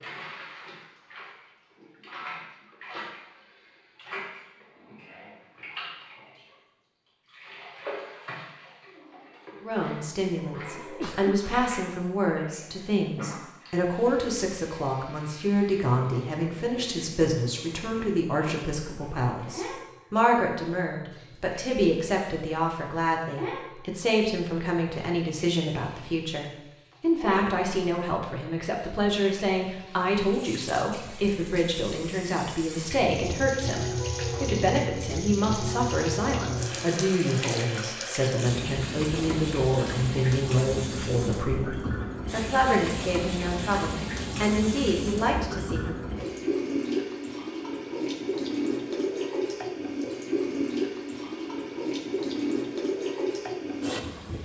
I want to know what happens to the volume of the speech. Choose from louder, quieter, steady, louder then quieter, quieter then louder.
steady.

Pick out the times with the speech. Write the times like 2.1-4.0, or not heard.
9.6-46.0.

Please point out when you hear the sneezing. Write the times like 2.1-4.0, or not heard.
10.8-11.6.